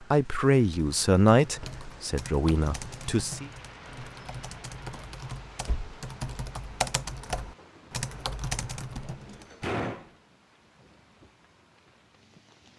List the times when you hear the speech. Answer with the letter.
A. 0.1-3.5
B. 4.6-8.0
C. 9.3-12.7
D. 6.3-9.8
A.